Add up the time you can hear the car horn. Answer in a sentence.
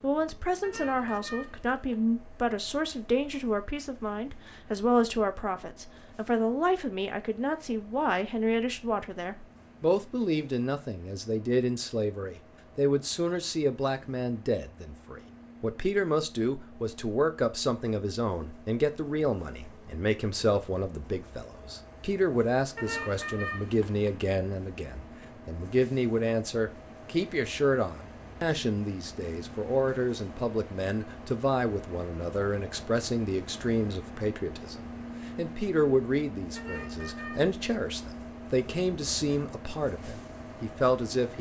You can hear the car horn for 4 seconds altogether.